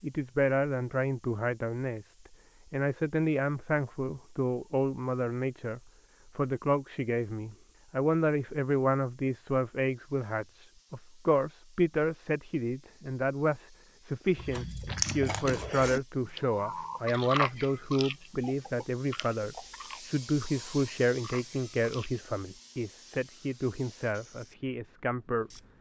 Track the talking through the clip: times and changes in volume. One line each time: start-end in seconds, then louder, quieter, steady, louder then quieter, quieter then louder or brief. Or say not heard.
0.0-25.5 steady.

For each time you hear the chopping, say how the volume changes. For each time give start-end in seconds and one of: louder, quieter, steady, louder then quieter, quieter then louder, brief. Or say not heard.
not heard.